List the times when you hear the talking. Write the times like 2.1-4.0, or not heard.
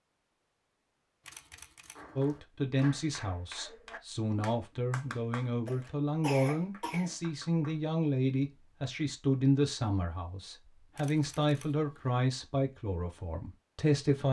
2.1-14.2.